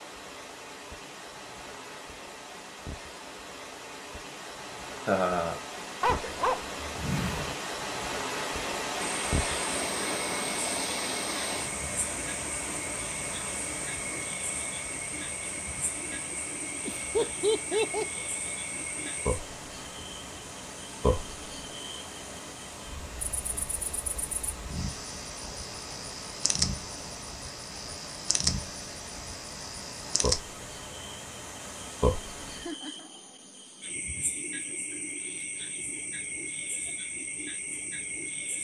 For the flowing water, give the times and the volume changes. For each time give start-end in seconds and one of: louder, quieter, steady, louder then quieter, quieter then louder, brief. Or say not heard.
0.0-32.8 louder then quieter.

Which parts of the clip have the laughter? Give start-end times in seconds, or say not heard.
5.0-5.6, 16.9-18.2, 32.5-33.1.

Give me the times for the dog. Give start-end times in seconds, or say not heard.
6.0-7.5.